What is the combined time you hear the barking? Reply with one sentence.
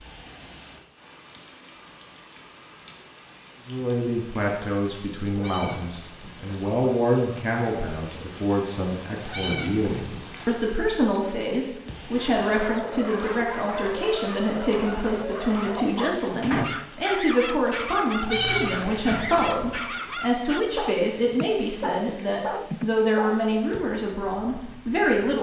You can hear the barking for 11 seconds altogether.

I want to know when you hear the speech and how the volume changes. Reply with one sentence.
You can hear the speech from 3.6 to 25.3 s, at a steady volume.